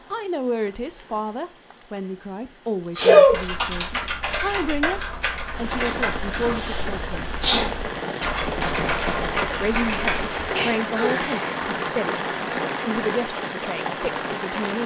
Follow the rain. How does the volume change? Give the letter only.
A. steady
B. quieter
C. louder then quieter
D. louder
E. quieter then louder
D.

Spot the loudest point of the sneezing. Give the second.
3 s.